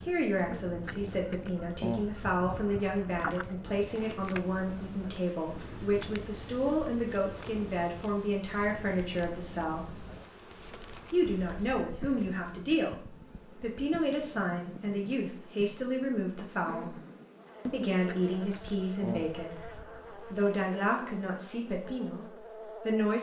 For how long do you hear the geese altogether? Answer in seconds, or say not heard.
5 s.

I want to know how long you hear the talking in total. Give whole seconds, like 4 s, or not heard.
21 s.